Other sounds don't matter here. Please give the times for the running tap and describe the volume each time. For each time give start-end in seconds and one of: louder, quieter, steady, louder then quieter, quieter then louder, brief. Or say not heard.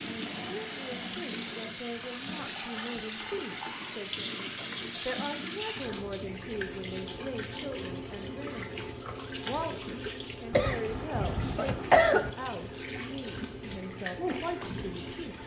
0.0-15.4 steady.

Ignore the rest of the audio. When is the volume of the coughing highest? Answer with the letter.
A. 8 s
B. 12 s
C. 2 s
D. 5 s
B.